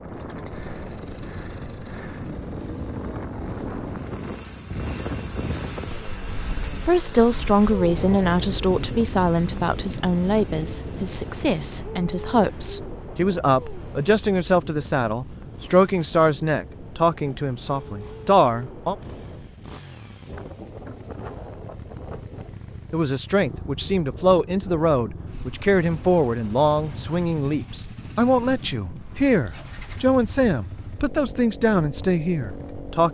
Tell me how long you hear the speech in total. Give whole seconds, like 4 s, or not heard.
22 s.